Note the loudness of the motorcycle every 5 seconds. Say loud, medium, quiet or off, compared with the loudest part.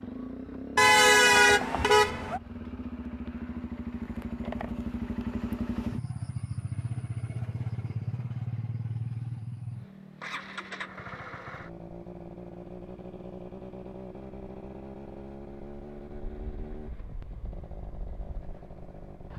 loud, loud, medium, medium.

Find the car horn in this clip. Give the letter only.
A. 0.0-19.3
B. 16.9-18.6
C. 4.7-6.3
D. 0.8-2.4
D.